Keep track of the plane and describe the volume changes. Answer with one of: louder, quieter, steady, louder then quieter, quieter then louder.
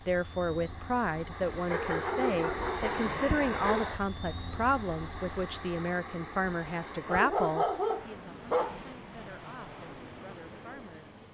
louder then quieter.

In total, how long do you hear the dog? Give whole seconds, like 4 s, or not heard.
4 s.